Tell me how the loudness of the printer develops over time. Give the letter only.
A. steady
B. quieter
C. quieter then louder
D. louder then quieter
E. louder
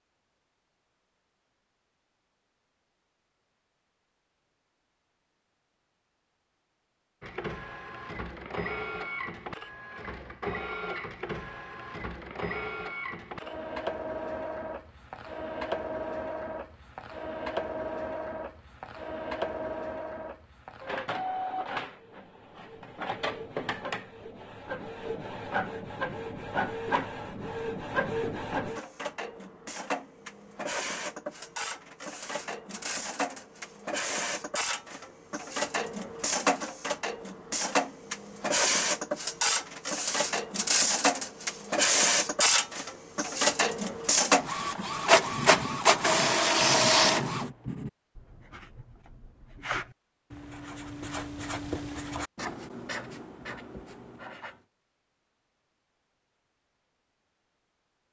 E.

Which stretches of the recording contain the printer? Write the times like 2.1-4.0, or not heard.
7.2-47.5.